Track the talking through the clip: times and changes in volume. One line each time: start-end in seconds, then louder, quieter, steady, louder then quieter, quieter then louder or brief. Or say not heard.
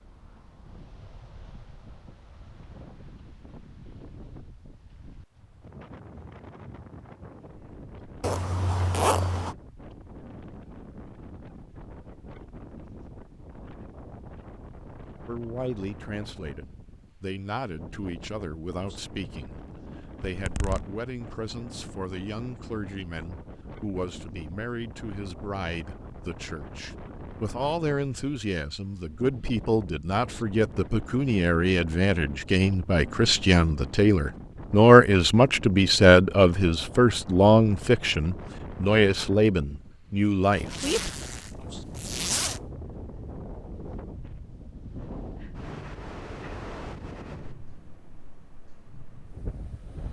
15.2-41.1 louder.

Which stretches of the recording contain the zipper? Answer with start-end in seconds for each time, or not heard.
8.2-9.6, 20.2-20.9, 40.5-42.6.